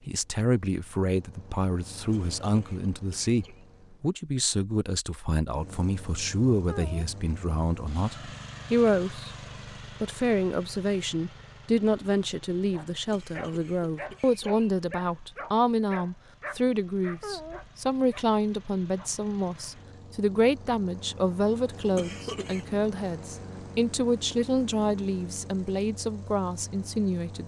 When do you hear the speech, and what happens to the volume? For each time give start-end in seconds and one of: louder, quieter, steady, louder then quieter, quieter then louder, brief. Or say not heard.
0.1-9.3 steady
10.0-27.4 steady.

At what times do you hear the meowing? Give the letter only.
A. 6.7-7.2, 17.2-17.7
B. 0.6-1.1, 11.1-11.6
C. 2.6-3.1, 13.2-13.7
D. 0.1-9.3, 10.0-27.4
A.